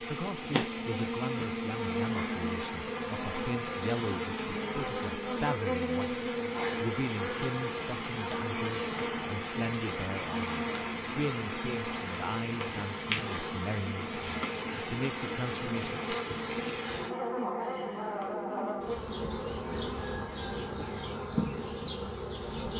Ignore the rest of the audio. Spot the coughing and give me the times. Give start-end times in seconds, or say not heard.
not heard.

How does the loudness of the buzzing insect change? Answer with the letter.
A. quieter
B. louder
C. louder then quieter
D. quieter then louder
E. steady
E.